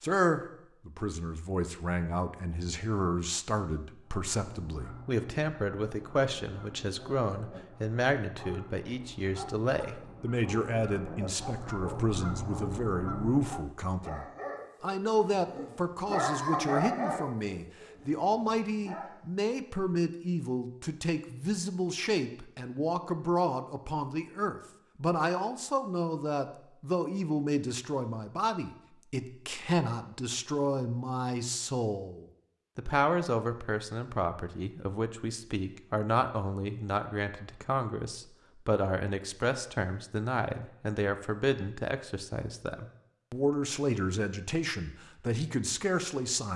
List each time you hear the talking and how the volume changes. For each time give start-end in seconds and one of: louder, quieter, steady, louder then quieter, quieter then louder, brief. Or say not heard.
0.0-46.5 steady.